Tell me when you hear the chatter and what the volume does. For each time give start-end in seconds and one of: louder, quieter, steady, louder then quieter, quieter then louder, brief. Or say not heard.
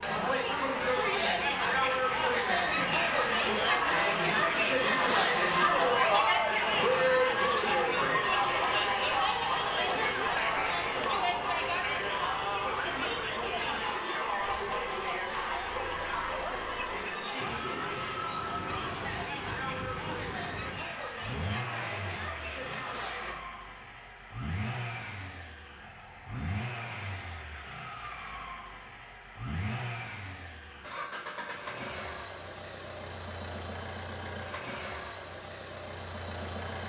0.0-23.4 quieter.